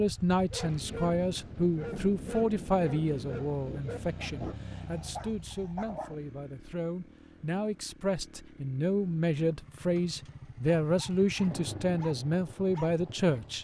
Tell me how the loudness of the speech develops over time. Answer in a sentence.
The volume of the speech goes down, then up.